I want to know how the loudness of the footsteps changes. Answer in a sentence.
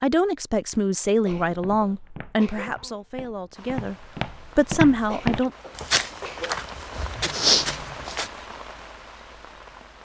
The loudness of the footsteps goes up.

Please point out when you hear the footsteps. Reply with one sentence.
The footsteps can be heard from 1.4 to 8.3 s.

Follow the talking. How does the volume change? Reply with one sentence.
The volume of the talking goes down, then up.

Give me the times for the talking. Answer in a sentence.
You can hear the talking from 0.0 to 5.5 s.